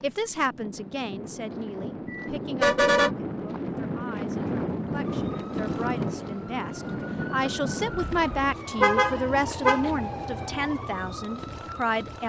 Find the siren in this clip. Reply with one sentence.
You can hear the siren from 5.0 to 12.2 s.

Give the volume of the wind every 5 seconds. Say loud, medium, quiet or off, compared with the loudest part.
loud, loud, off.